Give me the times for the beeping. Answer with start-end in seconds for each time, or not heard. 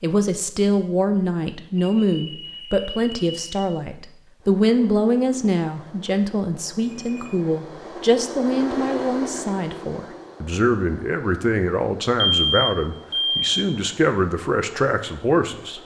1.8-3.6, 6.8-7.6, 12.3-13.5.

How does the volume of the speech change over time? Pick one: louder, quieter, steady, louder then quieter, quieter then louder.
steady.